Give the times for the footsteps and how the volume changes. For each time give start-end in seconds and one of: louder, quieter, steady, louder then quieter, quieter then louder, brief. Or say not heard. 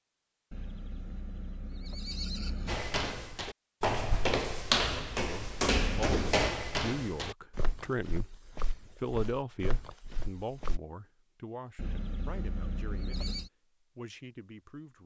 2.6-10.8 quieter.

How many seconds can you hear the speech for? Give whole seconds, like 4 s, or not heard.
9 s.